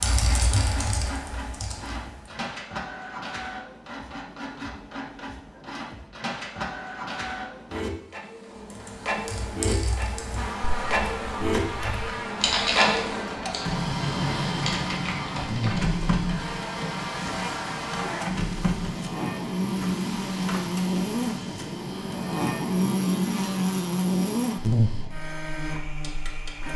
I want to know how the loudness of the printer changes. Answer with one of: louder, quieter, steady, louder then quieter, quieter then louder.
louder then quieter.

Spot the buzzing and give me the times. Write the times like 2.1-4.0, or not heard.
10.3-26.7.